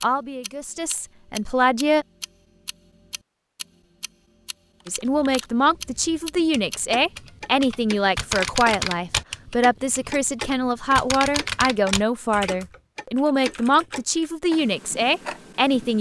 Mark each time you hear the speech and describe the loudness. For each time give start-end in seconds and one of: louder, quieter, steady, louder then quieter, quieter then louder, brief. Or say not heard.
0.0-2.0 brief
4.8-15.9 steady.